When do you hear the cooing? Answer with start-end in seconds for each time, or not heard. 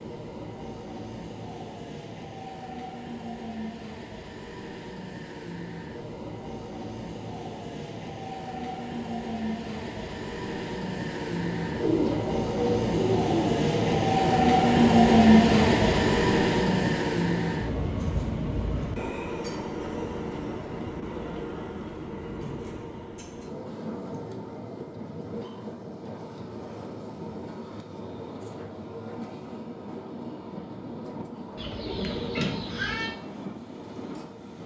11.8-14.2, 31.6-33.1.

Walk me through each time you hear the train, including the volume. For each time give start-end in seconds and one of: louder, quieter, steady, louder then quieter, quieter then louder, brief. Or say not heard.
0.0-34.6 louder then quieter.